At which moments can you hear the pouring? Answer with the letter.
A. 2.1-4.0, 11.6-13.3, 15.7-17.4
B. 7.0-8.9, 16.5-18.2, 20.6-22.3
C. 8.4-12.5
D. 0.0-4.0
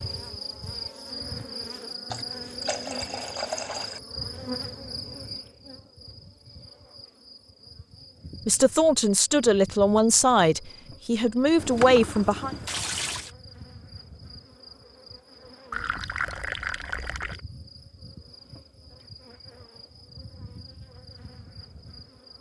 A.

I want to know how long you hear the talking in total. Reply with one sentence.
The talking can be heard for 4 seconds in total.